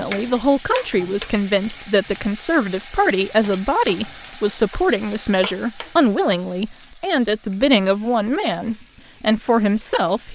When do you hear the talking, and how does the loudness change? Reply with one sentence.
You can hear the talking from 0.0 to 10.3 s, at a steady volume.